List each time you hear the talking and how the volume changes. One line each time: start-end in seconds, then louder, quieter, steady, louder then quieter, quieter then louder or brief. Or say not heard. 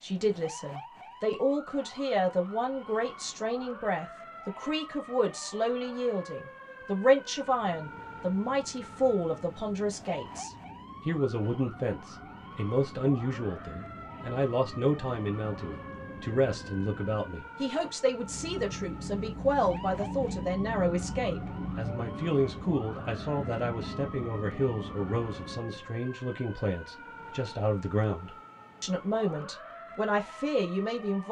0.0-31.2 steady.